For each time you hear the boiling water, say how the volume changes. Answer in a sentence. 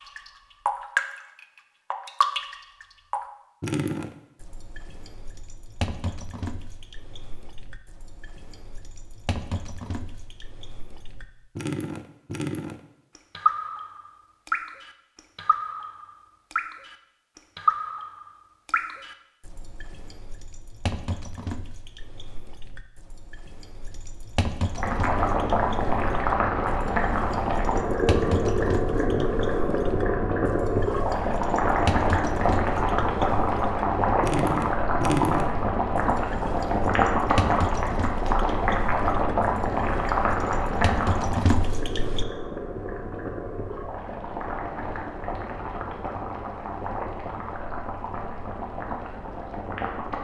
The boiling water can be heard from 24.7 to 50.1 s, getting quieter.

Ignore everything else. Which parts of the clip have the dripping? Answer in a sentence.
You can hear the dripping from 0.0 to 42.2 s.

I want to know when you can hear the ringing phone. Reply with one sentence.
You can't hear the ringing phone here.